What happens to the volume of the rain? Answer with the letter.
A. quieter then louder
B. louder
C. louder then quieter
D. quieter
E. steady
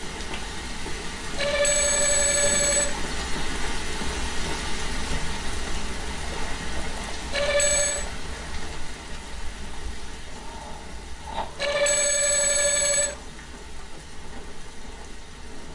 D.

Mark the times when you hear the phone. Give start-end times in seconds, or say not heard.
1.4-3.0, 7.3-8.1, 11.6-13.2.